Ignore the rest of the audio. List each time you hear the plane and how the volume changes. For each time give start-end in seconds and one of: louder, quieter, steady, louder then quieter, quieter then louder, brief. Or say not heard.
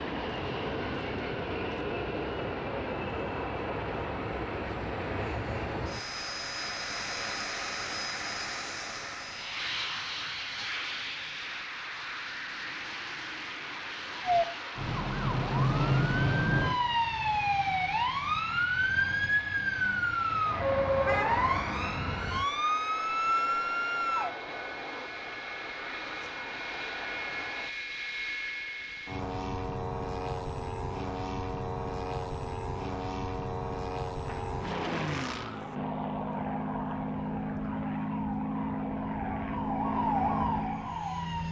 0.0-41.4 quieter then louder.